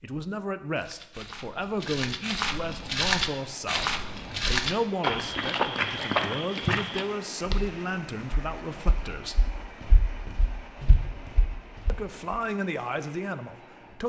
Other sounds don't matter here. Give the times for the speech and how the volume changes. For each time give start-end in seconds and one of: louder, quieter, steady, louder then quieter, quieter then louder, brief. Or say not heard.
0.0-9.4 steady
11.8-14.0 brief.